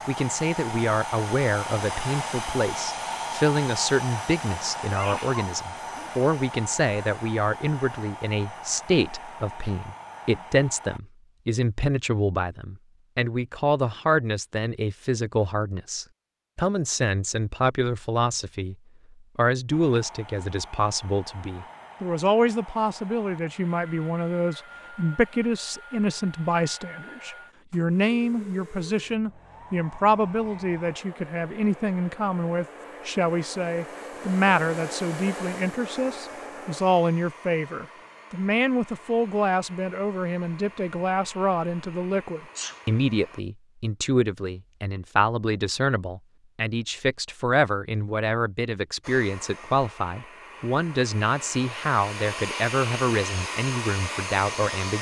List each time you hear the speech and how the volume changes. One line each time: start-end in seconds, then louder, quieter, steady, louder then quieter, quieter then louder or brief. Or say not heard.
0.1-18.8 steady
19.4-54.9 steady.